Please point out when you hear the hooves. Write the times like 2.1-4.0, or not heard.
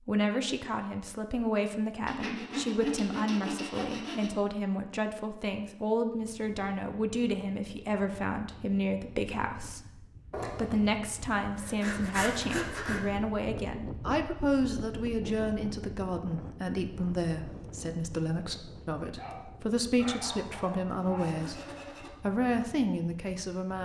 not heard.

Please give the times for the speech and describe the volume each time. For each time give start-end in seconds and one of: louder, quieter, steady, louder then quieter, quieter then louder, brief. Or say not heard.
0.1-21.6 steady
22.2-23.8 brief.